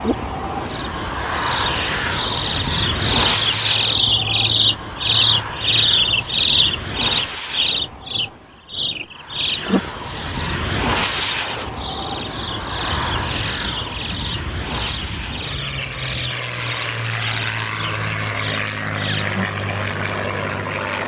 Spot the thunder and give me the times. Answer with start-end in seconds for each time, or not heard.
12.8-16.4.